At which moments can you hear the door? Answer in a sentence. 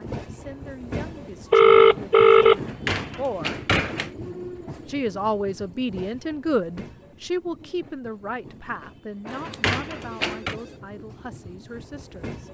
You can hear the door from 2.5 to 4.1 s and from 9.2 to 10.6 s.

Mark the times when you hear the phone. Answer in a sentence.
The phone can be heard from 0.9 to 2.6 s and from 9.2 to 10.8 s.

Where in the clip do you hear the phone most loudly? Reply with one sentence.
The volume of the phone peaks at 2 seconds.